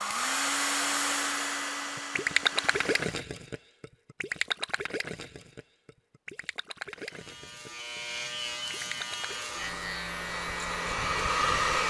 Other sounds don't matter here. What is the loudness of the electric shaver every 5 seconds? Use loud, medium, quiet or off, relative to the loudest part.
off, loud, loud.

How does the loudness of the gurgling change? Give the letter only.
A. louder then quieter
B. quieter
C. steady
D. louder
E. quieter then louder
B.